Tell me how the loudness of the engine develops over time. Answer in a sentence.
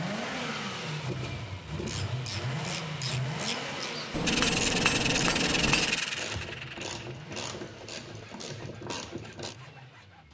The volume of the engine goes down.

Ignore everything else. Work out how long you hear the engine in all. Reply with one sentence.
The engine can be heard for 10 seconds in total.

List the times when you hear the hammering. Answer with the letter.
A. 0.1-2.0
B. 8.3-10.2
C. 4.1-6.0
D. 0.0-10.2
C.